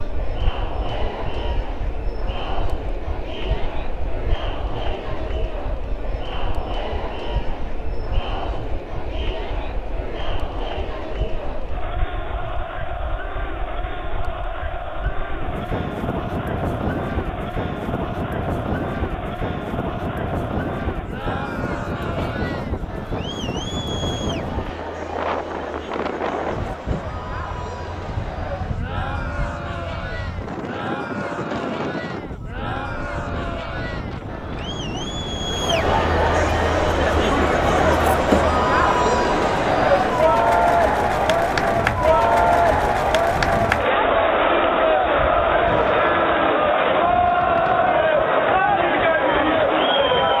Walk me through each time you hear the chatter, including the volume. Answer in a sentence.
You can hear the chatter from 0.0 to 50.3 s, getting louder.